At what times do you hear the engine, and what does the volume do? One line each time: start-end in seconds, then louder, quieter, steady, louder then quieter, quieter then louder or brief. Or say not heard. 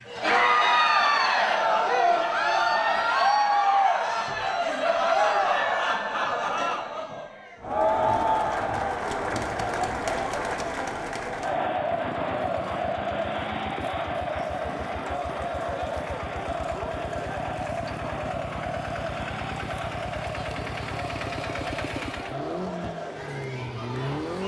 11.3-24.4 louder.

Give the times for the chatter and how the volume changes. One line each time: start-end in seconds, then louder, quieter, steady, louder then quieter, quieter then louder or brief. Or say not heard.
0.1-24.4 quieter.